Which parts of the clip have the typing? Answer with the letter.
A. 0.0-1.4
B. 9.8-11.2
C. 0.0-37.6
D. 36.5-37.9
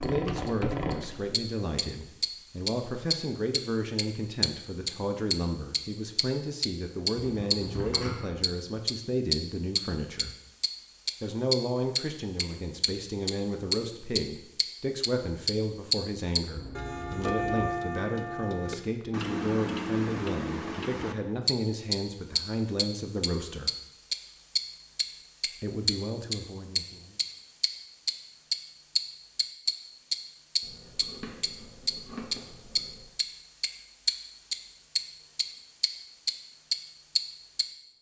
A.